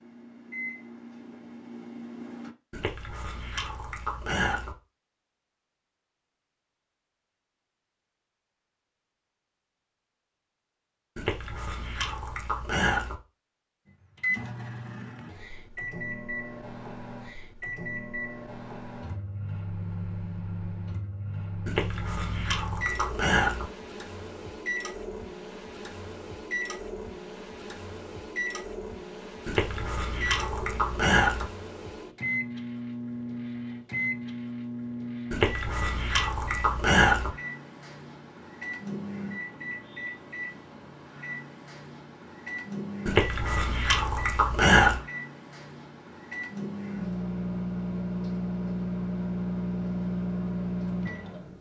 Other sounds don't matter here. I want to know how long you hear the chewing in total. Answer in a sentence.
You can hear the chewing for 12 seconds altogether.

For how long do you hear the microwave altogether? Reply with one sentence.
You can hear the microwave for 40 seconds altogether.